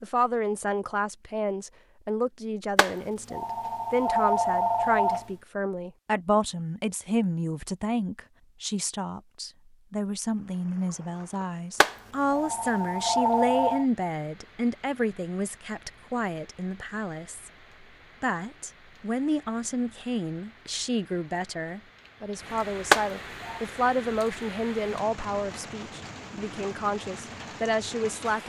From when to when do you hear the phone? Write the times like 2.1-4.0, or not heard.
2.8-5.2, 11.8-13.8, 22.9-23.6.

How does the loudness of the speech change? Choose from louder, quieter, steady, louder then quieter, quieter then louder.
steady.